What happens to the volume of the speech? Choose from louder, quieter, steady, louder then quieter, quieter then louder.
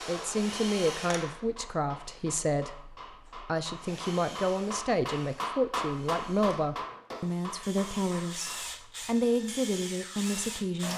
steady.